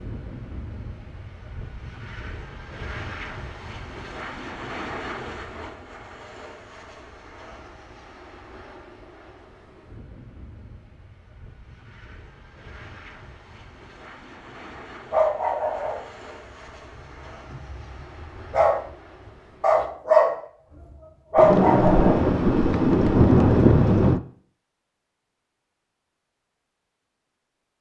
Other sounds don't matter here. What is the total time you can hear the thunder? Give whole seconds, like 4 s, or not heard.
3 s.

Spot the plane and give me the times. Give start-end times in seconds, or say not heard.
0.0-19.9.